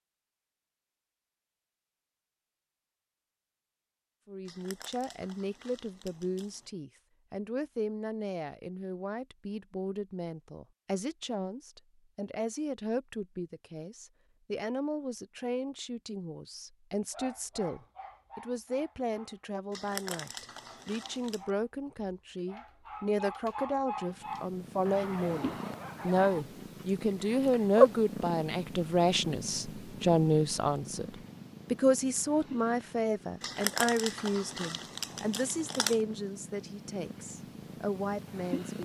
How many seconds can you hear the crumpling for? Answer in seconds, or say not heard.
7 s.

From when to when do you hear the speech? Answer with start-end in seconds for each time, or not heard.
4.2-38.8.